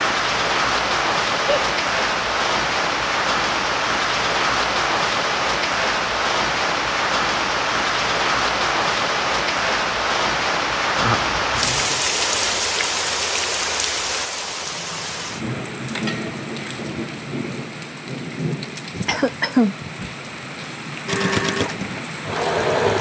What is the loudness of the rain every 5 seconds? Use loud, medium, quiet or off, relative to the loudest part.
loud, loud, loud, medium, medium.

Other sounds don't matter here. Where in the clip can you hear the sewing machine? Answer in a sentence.
You can hear the sewing machine from 21.1 to 22.9 s.